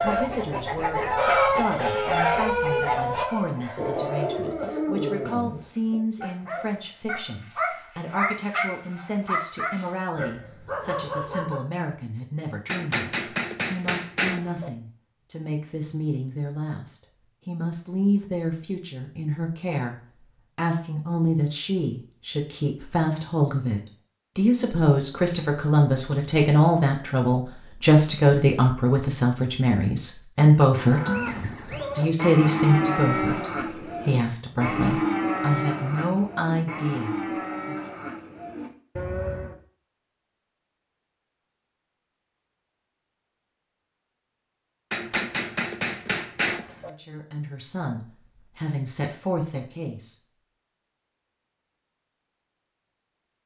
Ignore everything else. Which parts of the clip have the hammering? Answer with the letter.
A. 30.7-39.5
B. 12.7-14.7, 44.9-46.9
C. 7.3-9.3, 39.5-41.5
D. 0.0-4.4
B.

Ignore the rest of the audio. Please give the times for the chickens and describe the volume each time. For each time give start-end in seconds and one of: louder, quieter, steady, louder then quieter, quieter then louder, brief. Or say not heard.
0.0-4.4 louder then quieter.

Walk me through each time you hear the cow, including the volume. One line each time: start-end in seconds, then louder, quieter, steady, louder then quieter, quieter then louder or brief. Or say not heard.
30.7-39.5 quieter.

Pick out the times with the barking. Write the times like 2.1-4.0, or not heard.
3.6-11.6.